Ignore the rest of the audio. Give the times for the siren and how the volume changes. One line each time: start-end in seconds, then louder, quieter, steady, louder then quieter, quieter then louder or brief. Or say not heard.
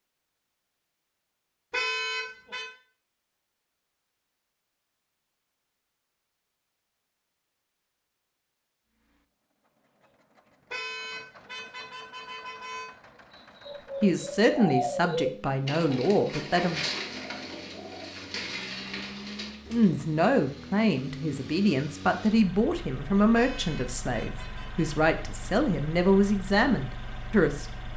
not heard.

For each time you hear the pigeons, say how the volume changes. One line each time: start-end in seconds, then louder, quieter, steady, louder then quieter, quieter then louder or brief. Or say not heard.
13.6-20.0 quieter.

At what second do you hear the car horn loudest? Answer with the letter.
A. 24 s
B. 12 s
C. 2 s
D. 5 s
C.